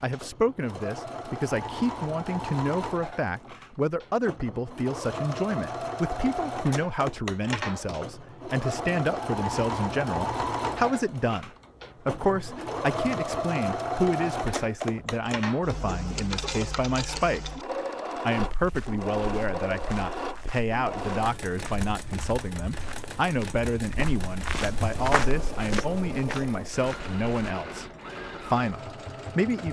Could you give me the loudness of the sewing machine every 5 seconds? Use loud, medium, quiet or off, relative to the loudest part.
medium, loud, loud, loud, medium, medium.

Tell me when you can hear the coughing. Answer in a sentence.
You can't hear the coughing here.